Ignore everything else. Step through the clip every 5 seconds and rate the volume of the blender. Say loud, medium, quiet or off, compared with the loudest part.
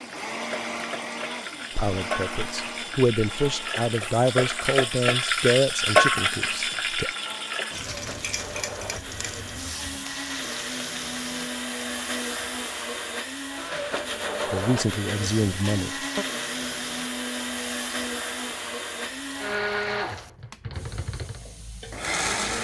medium, medium, loud, loud, loud.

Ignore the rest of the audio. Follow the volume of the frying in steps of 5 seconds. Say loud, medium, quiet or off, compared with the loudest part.
medium, loud, quiet, quiet, quiet.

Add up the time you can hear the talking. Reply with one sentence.
The talking can be heard for 7 seconds in total.